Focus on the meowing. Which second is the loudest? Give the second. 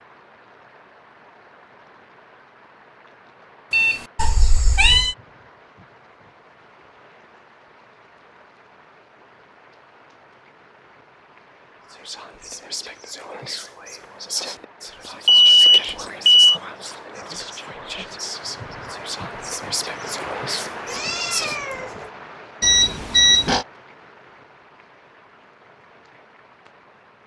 5 s.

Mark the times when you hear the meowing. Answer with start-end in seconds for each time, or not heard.
4.2-5.2, 20.9-22.1.